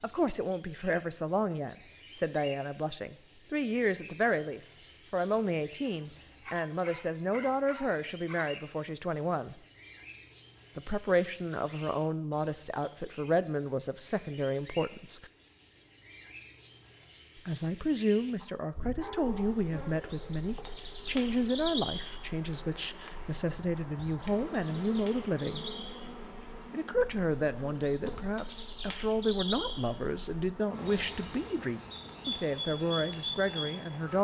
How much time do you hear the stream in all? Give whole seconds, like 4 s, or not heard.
not heard.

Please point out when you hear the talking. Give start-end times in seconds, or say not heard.
0.0-9.6, 10.8-15.3, 17.4-25.7, 26.7-34.1.